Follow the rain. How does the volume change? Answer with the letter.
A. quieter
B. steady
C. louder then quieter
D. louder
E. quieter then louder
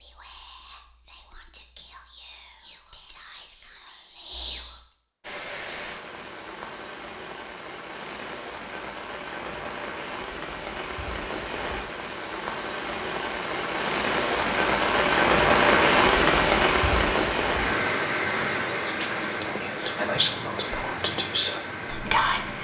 C.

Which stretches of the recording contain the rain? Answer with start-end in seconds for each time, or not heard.
5.2-22.6.